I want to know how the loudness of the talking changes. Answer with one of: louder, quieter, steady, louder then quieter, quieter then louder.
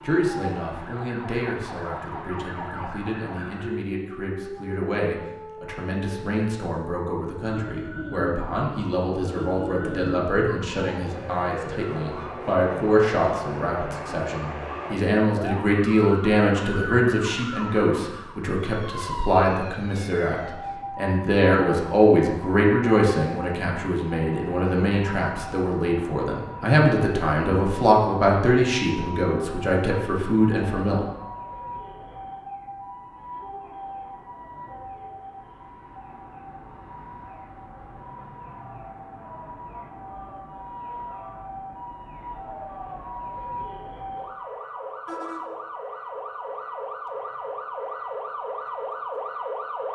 louder.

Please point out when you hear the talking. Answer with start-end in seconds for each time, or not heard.
0.0-31.0.